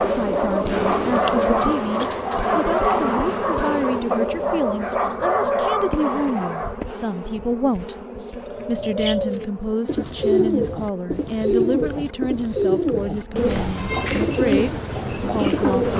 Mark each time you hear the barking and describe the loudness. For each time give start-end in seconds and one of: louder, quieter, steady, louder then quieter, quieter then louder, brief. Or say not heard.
0.0-6.8 steady.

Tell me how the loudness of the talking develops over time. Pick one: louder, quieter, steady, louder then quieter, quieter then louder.
steady.